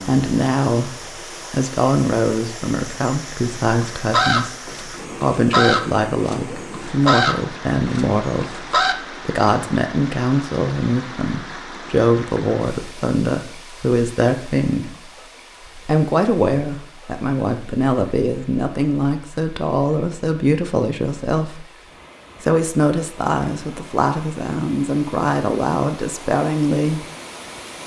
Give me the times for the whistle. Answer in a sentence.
The whistle can't be heard in this clip.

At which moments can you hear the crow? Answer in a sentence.
The crow can be heard from 3.6 to 8.9 s.